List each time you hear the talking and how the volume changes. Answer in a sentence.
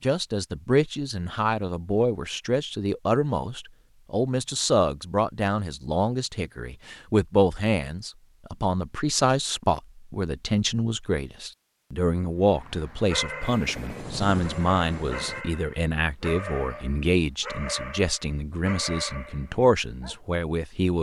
You can hear the talking from 0.0 to 20.9 s, at a steady volume.